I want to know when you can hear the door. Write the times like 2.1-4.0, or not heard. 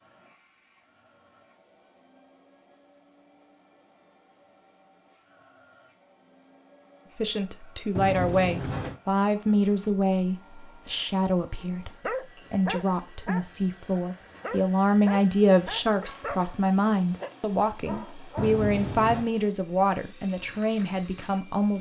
8.0-9.0, 18.4-19.3.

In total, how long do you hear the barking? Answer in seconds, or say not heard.
7 s.